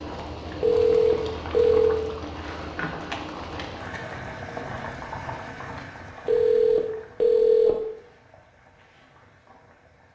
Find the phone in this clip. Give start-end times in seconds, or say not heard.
0.6-2.0, 6.2-7.8.